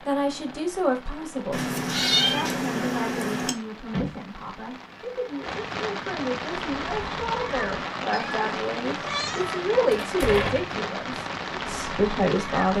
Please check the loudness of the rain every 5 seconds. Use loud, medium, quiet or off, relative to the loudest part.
quiet, loud, loud.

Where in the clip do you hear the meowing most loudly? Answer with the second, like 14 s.
2 s.